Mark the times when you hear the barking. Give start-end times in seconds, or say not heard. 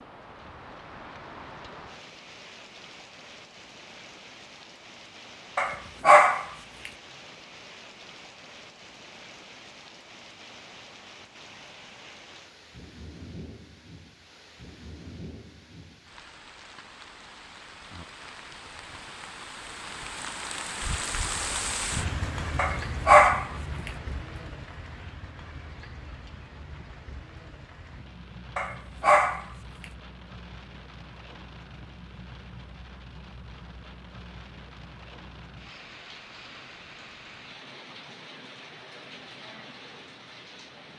5.5-6.9, 22.6-23.9, 28.6-29.4.